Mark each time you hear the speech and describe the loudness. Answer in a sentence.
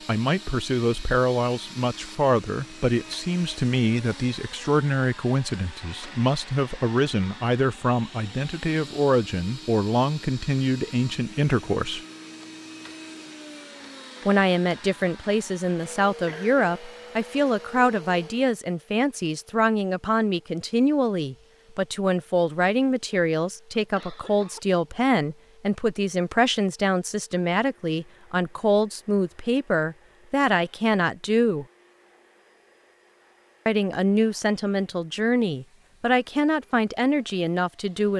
You can hear the speech from 0.1 to 12.0 s, at a steady volume; from 14.2 to 31.6 s, at a steady volume; and from 33.6 to 38.1 s, at a steady volume.